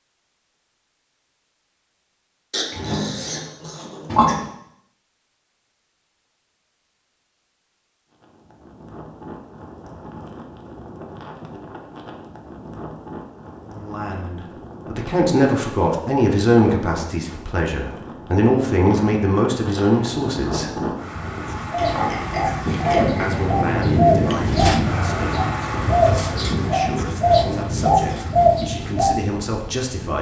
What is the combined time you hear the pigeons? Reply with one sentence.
You can hear the pigeons for 8 seconds altogether.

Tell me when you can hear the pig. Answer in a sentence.
You can hear the pig from 2.5 to 4.5 s and from 21.8 to 23.4 s.